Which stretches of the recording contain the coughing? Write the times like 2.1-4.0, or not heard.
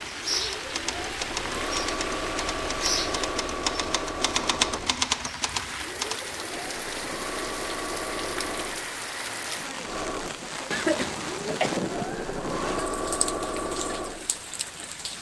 10.7-11.7.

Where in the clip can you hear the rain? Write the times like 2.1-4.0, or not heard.
0.0-15.1.